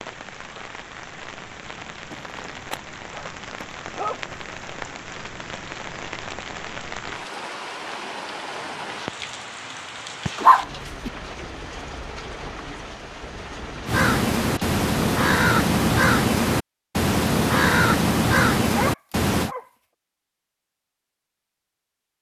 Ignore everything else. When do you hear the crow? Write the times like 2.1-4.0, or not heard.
13.8-19.5.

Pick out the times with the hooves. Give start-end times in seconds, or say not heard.
not heard.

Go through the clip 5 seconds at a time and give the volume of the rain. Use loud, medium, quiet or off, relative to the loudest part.
loud, loud, loud, off, off.